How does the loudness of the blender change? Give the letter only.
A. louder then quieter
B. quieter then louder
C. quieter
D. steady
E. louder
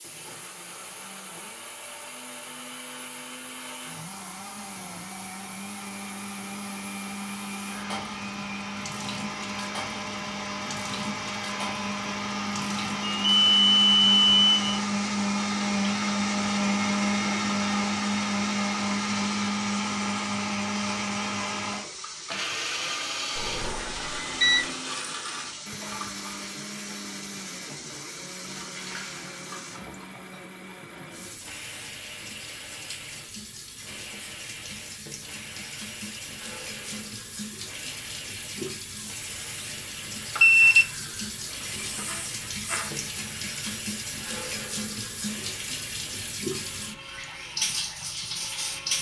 A.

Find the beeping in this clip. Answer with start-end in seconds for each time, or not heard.
13.1-14.6, 23.4-24.6, 40.4-40.9, 41.9-42.9.